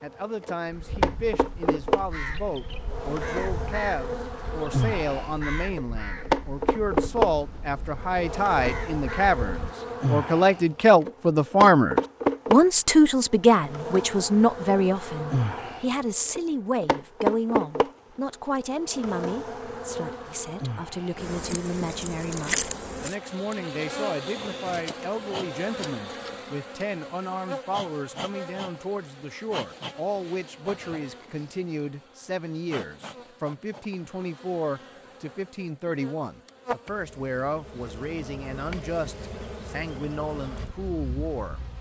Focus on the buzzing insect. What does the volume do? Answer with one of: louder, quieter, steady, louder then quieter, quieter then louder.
quieter.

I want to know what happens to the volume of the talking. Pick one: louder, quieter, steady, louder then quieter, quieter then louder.
louder then quieter.